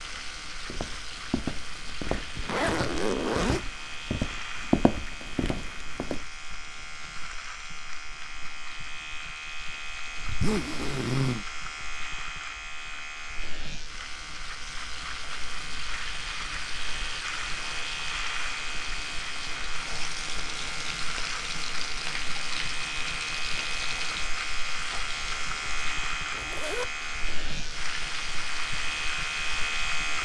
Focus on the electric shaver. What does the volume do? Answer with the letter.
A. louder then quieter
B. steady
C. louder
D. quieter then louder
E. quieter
C.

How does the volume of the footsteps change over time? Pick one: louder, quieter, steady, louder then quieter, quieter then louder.
louder then quieter.